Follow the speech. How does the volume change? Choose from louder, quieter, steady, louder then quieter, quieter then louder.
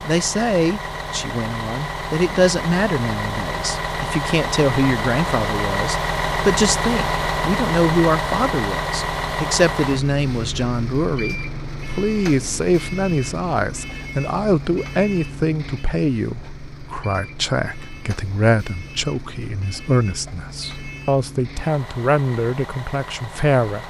steady.